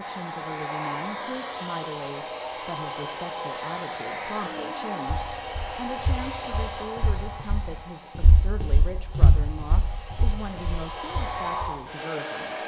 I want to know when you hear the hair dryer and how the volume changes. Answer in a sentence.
The hair dryer can be heard from 0.0 to 12.6 s, getting quieter then louder.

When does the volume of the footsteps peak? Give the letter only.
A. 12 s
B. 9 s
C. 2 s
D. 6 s
B.